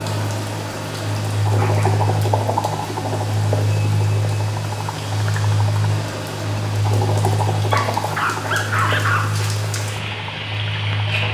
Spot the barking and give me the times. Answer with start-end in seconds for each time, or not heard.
1.6-2.0, 7.7-9.4.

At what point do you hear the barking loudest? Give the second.
9 s.